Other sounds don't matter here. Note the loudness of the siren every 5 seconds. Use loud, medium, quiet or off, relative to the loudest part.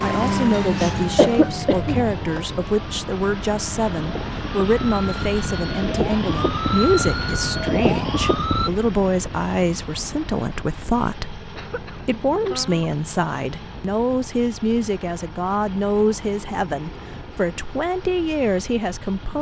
loud, loud, off, off.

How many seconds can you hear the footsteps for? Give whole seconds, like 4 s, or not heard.
not heard.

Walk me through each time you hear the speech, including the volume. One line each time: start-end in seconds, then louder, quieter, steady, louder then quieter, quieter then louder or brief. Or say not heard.
0.0-19.3 steady.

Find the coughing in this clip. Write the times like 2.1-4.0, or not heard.
1.1-2.0, 11.6-13.1.